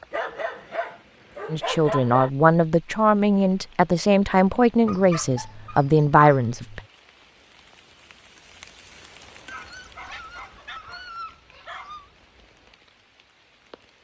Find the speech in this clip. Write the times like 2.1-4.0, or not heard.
1.5-6.8.